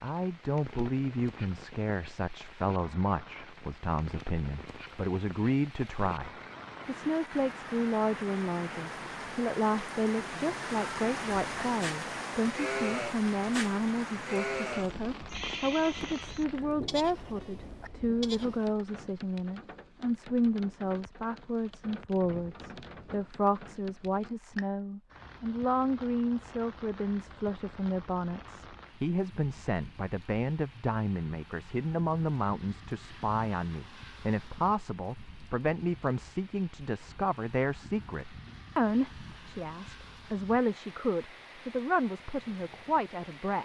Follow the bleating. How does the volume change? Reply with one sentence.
The loudness of the bleating goes down.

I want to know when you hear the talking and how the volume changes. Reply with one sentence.
The talking can be heard from 0.0 to 43.5 s, at a steady volume.